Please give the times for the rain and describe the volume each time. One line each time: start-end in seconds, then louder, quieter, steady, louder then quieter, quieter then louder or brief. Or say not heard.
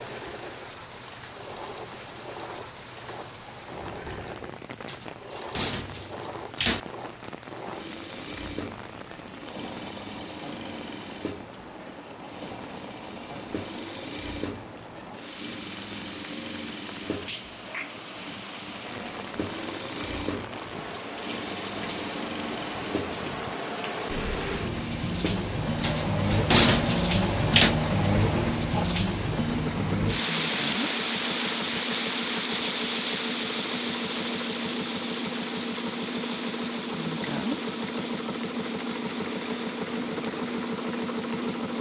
0.0-41.7 louder then quieter.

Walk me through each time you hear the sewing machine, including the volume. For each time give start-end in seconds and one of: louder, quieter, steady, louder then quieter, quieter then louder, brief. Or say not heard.
0.0-41.7 louder.